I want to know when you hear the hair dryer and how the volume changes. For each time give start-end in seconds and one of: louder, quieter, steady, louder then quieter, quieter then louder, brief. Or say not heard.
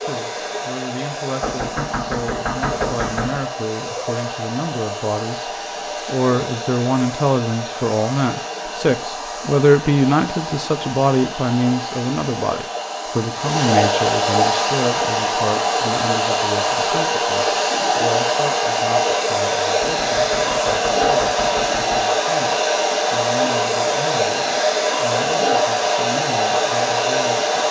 0.0-27.6 louder.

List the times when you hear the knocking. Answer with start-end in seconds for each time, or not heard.
1.4-3.4, 19.8-22.1.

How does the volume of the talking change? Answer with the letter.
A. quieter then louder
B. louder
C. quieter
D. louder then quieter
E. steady
D.